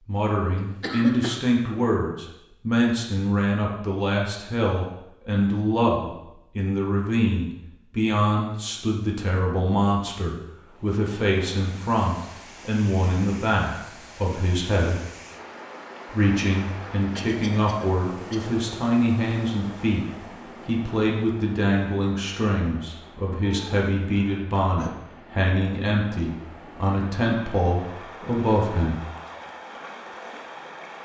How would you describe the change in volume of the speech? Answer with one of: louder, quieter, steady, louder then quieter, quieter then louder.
steady.